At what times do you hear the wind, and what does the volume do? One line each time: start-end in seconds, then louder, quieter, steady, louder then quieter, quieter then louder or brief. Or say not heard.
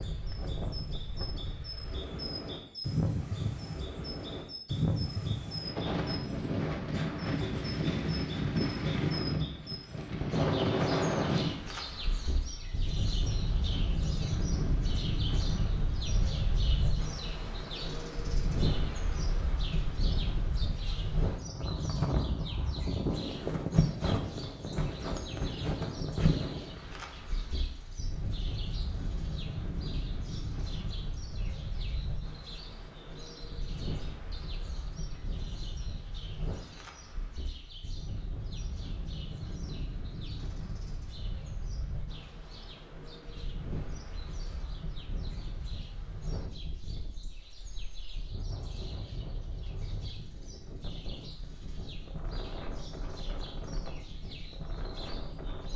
0.0-55.7 quieter.